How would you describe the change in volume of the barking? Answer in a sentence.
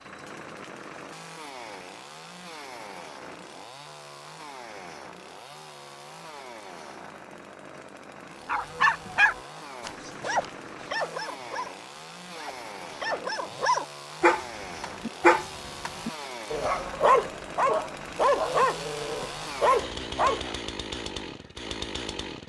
The volume of the barking goes down, then up.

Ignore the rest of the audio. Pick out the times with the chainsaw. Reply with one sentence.
The chainsaw can be heard from 0.0 to 22.4 s.